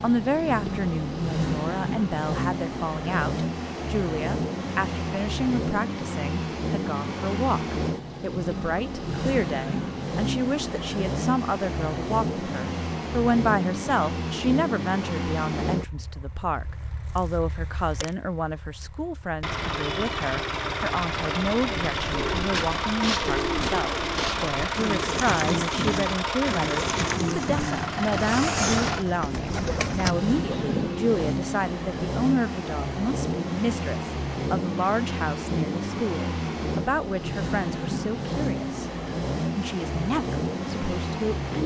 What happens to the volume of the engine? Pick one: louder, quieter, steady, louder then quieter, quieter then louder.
steady.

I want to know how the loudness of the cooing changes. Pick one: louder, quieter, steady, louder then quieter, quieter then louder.
steady.